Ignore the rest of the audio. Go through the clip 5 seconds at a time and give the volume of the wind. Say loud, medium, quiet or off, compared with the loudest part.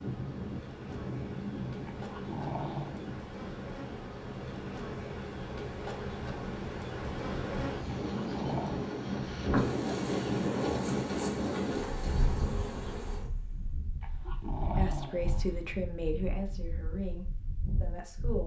medium, loud, loud, medium.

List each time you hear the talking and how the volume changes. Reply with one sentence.
The talking can be heard from 14.2 to 18.4 s, getting quieter.